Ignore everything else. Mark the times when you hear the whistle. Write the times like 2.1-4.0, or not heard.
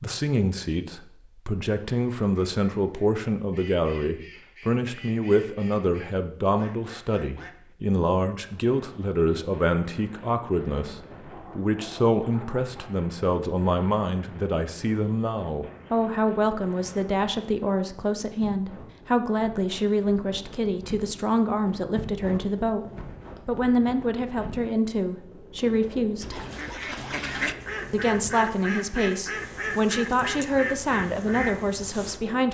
not heard.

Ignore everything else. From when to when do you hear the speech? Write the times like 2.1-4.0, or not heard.
0.0-22.9, 23.4-26.4, 27.9-32.5.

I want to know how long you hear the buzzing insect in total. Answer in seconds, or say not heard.
not heard.